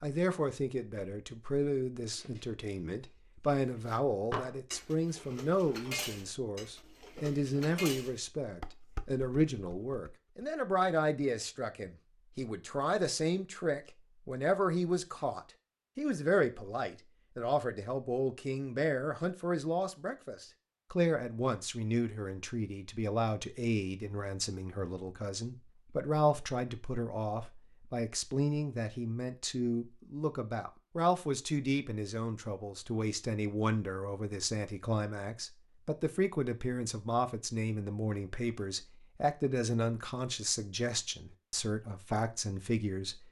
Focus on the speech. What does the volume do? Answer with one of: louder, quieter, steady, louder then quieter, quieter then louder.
steady.